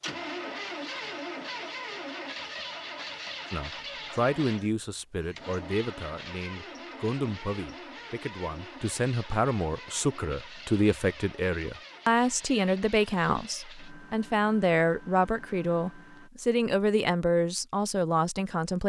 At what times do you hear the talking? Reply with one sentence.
You can hear the talking from 3.5 to 18.8 s.